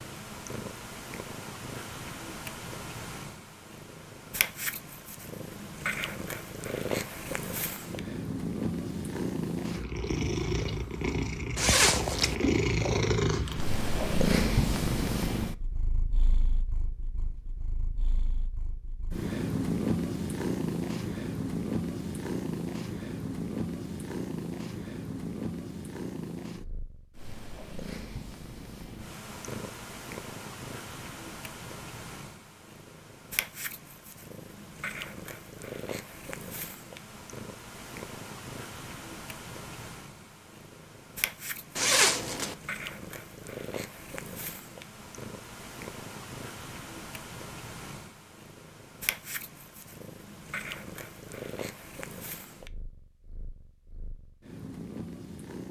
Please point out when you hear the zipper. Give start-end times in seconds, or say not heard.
11.6-12.3, 41.8-42.5.